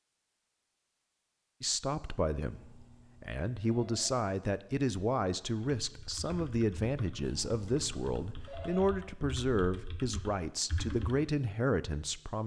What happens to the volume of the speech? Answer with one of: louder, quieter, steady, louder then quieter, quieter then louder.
steady.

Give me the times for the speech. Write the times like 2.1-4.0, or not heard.
1.6-12.4.